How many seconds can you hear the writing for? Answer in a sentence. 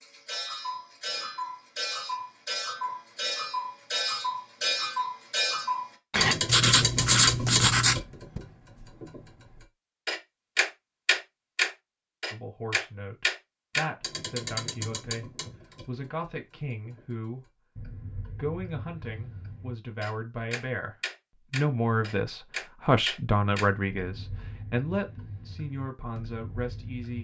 You can hear the writing for 2 seconds altogether.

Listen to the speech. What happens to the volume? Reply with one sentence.
The volume of the speech goes up, then down.